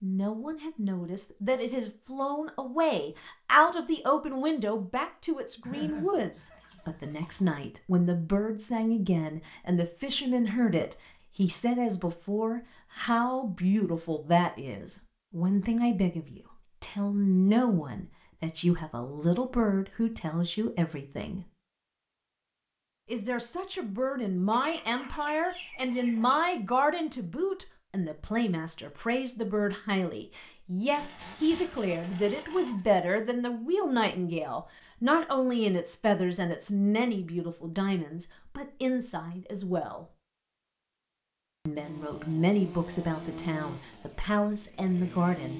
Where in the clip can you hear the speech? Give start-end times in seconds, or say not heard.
0.0-21.4, 23.1-40.0, 41.6-45.5.